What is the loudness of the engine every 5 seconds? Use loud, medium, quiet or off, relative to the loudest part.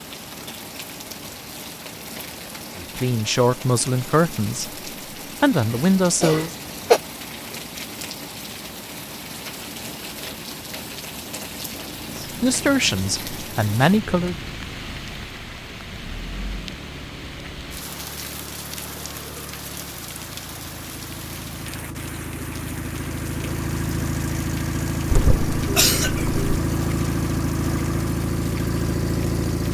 off, off, quiet, quiet, medium, loud.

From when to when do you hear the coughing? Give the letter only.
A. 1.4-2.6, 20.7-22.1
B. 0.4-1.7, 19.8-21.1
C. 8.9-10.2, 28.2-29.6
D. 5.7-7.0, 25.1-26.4
D.